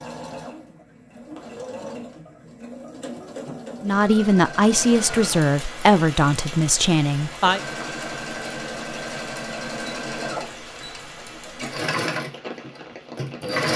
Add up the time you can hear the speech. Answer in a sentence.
The speech can be heard for 4 seconds in total.